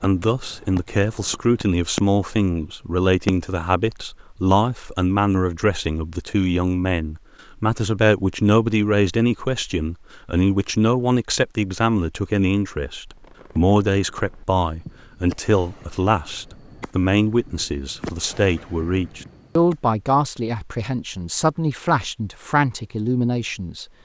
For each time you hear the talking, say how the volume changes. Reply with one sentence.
You can hear the talking from 0.0 to 23.9 s, at a steady volume.